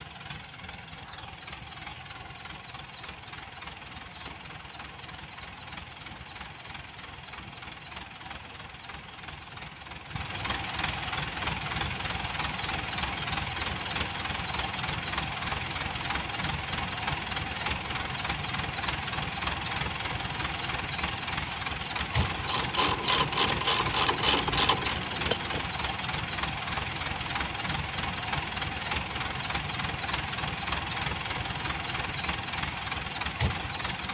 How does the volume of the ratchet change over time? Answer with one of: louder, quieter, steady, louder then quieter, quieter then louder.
louder.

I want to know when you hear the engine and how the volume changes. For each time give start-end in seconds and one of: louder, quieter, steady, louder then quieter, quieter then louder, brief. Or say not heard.
0.0-34.1 louder.